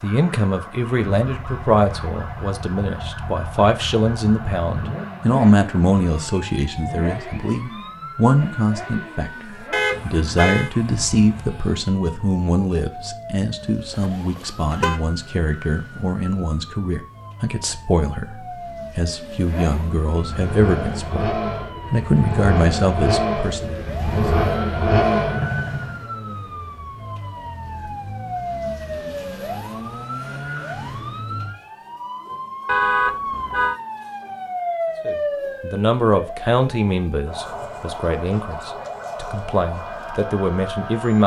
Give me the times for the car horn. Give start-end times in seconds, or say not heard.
9.7-10.7, 13.9-15.1, 32.6-33.8.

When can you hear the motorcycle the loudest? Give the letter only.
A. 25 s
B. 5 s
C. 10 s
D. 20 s
A.